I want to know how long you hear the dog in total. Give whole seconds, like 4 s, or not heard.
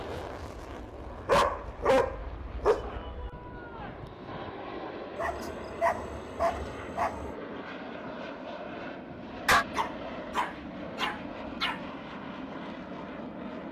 6 s.